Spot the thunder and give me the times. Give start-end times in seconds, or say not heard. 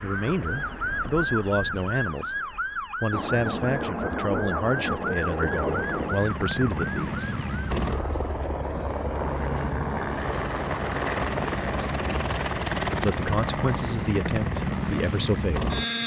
3.1-6.3.